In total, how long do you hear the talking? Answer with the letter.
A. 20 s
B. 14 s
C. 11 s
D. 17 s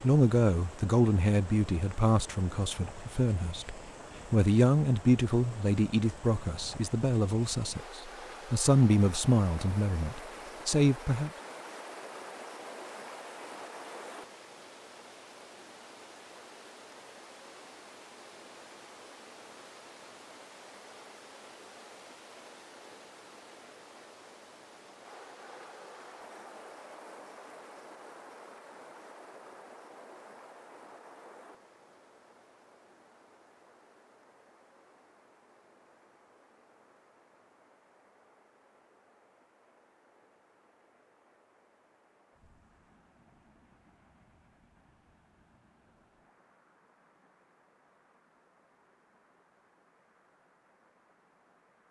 C.